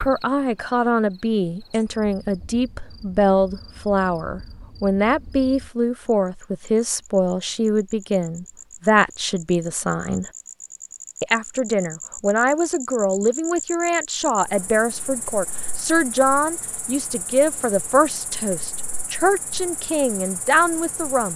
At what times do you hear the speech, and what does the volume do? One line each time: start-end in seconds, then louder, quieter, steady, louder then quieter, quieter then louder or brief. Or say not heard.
0.0-10.3 steady
11.2-21.3 steady.